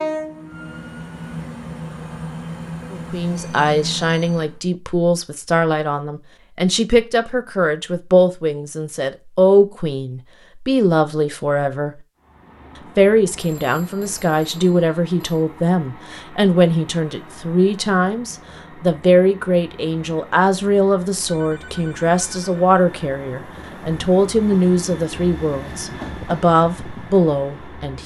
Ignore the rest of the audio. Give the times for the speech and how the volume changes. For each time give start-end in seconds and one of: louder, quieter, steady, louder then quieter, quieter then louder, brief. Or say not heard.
2.9-11.9 steady
12.9-28.0 steady.